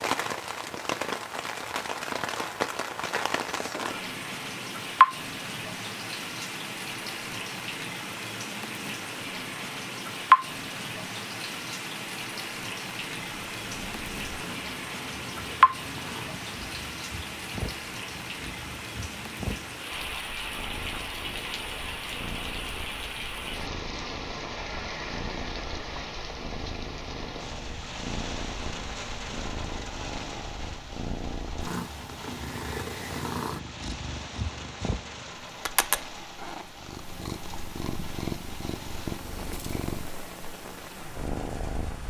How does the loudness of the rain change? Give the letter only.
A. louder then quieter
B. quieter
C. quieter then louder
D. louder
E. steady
B.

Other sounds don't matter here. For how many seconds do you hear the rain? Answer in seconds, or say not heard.
42 s.